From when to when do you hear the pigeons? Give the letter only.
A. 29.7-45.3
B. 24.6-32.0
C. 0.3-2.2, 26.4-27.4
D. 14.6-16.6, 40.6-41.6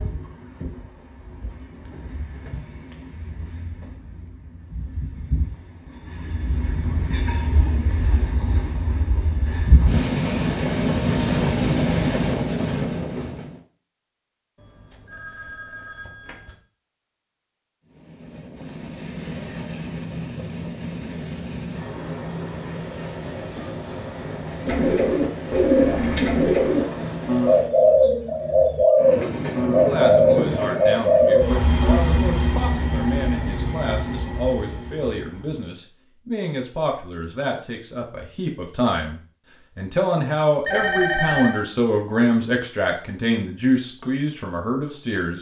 B.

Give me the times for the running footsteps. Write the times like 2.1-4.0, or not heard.
not heard.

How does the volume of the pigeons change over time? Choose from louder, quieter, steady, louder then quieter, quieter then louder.
steady.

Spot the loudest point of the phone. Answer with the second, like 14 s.
41 s.